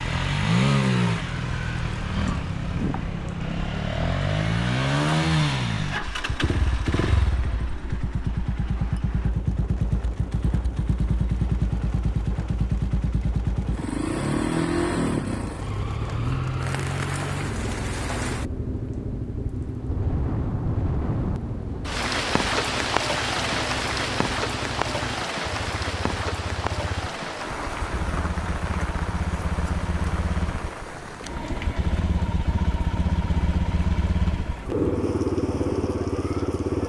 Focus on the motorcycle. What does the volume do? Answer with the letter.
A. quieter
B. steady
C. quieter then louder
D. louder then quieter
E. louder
C.